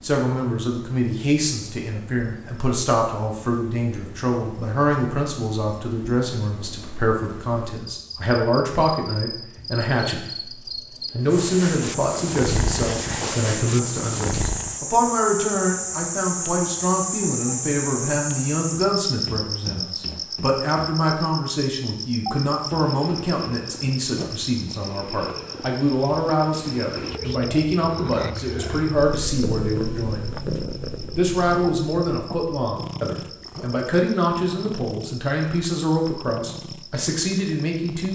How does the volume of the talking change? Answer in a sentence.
The loudness of the talking stays about the same.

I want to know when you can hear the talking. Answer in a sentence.
The talking can be heard from 0.0 to 10.5 s, from 11.1 to 30.4 s and from 31.1 to 38.1 s.